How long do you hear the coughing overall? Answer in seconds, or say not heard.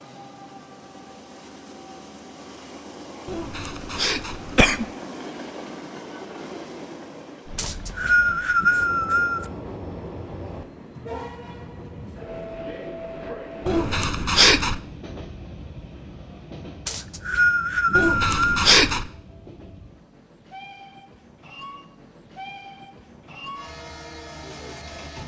4 s.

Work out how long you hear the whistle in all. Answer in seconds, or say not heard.
4 s.